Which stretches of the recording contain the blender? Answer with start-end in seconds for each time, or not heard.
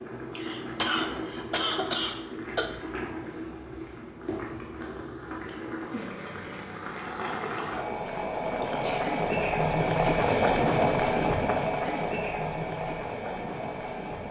not heard.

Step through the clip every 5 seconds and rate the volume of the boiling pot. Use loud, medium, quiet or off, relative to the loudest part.
medium, loud, loud.